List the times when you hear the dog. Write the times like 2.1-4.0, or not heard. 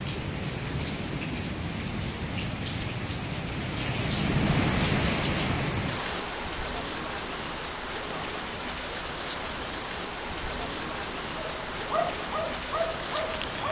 11.4-13.6.